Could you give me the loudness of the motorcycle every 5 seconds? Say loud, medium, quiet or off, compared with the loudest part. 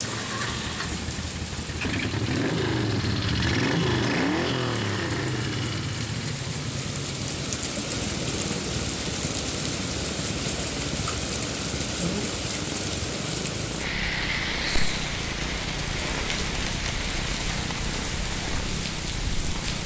loud, medium, medium, medium.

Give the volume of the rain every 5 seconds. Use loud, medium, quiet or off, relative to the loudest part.
medium, loud, loud, loud.